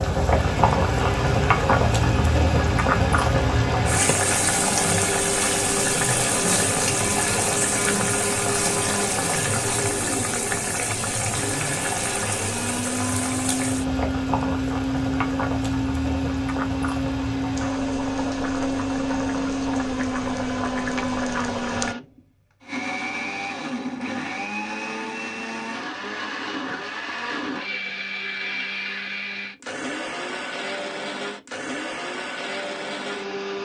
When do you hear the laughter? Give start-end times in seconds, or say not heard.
not heard.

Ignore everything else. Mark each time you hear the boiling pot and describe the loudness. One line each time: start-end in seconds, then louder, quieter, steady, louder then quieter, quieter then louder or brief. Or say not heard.
0.0-21.9 quieter.